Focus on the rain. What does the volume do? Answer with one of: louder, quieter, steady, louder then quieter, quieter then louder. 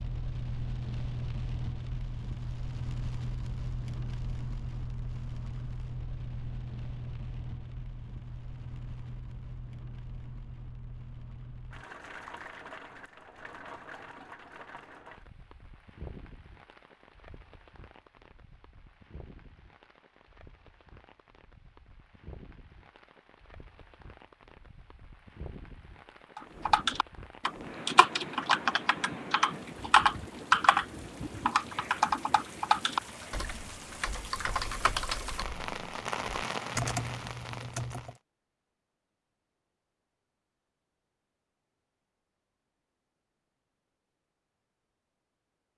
quieter then louder.